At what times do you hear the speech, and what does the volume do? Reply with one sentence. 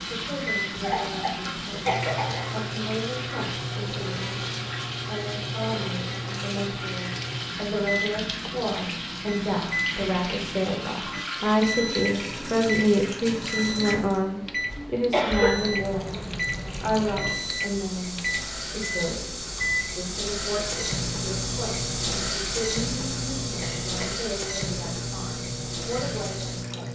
You can hear the speech from 0.1 to 16.2 s, getting louder; and from 16.8 to 26.8 s, at a steady volume.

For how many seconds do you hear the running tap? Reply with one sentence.
The running tap can be heard for 27 seconds in total.